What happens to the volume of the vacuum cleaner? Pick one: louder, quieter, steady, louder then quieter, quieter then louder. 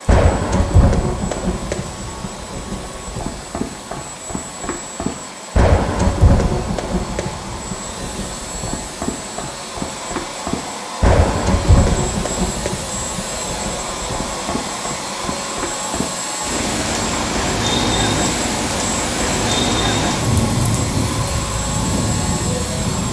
louder.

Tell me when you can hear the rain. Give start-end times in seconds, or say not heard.
0.0-23.0.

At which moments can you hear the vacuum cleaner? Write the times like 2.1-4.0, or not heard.
0.0-23.0.